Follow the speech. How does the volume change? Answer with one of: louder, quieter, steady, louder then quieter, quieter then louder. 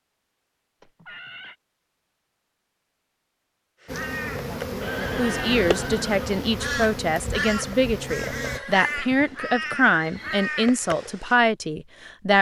steady.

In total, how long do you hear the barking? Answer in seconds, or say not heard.
not heard.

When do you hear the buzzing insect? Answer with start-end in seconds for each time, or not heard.
3.9-8.6.